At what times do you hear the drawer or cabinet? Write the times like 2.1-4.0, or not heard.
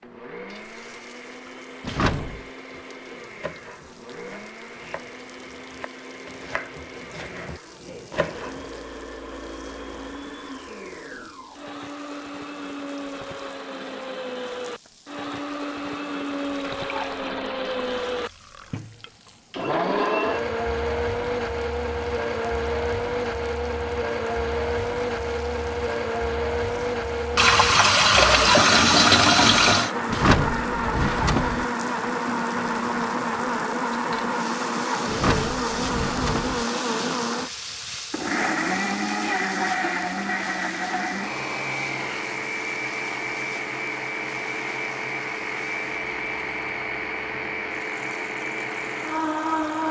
1.8-2.5, 30.1-31.6, 35.0-36.6.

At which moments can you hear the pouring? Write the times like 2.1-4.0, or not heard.
16.6-18.8, 27.4-29.9.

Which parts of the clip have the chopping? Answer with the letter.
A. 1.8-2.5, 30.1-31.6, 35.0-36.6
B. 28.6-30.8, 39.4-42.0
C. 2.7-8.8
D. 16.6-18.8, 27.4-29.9
C.